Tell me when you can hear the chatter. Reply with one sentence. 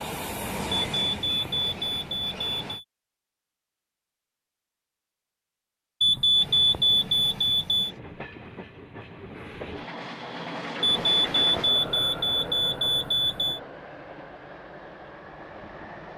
You can't hear the chatter here.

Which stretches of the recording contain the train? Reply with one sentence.
You can hear the train from 0.0 to 2.8 s and from 6.3 to 16.1 s.